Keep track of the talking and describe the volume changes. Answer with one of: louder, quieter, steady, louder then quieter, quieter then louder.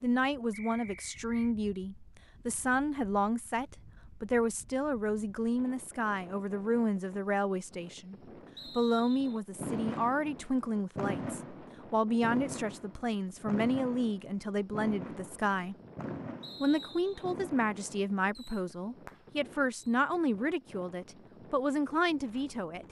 steady.